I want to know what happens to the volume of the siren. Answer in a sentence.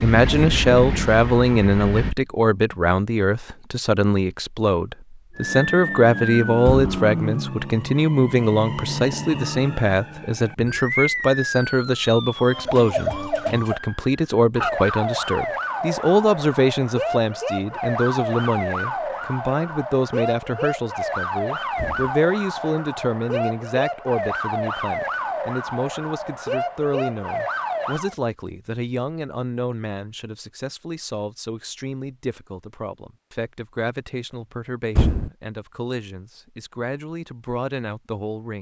The loudness of the siren stays about the same.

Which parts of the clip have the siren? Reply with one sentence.
The siren can be heard from 5.3 to 28.1 s.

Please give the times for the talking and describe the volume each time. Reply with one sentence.
You can hear the talking from 0.0 to 38.5 s, getting quieter.